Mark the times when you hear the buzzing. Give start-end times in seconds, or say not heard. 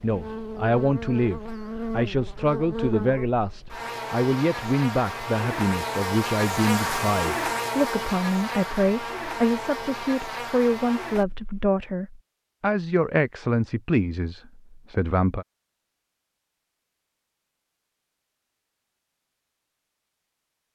0.0-11.4.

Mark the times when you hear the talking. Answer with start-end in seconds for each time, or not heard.
0.0-15.4.